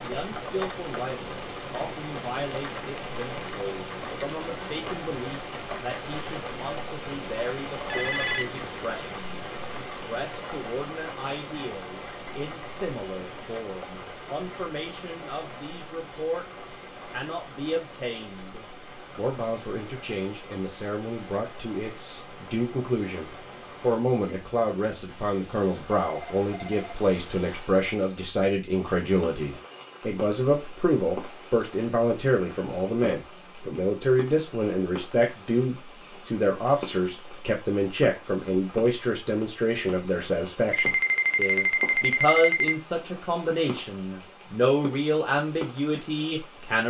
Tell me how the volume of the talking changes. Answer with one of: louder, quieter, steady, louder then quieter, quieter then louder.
louder.